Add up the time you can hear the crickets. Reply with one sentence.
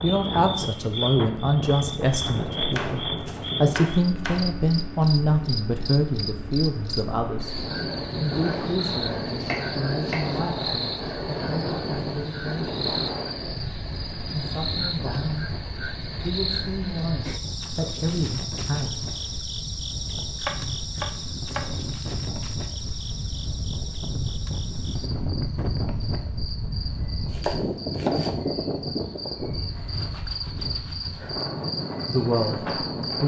The crickets can be heard for 33 seconds in total.